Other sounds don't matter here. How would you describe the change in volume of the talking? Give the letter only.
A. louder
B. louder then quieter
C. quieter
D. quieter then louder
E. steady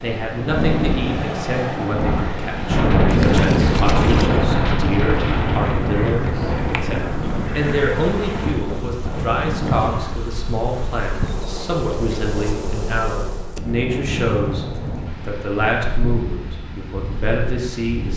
E.